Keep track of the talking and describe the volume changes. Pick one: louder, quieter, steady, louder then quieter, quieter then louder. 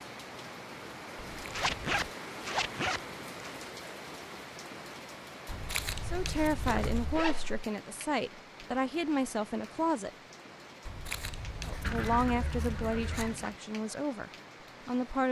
steady.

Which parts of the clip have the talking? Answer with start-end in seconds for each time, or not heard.
6.0-10.1, 11.7-15.2.